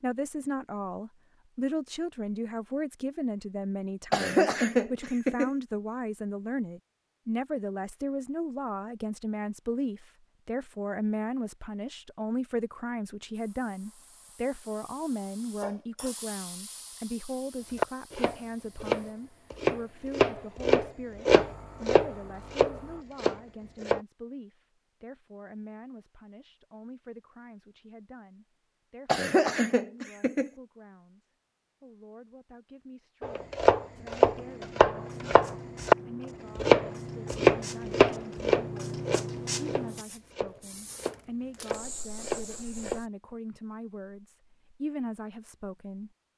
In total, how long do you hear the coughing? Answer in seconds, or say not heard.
3 s.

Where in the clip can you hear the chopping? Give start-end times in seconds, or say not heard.
17.8-24.0, 33.2-36.0, 36.5-43.0.